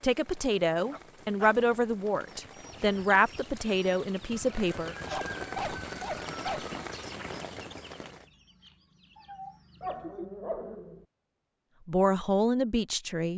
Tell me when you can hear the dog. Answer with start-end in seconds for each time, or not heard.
0.9-1.5, 5.0-6.8, 9.8-11.0.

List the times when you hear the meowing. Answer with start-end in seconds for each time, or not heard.
9.2-10.2.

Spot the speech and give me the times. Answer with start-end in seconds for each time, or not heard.
0.0-5.0, 11.8-13.3.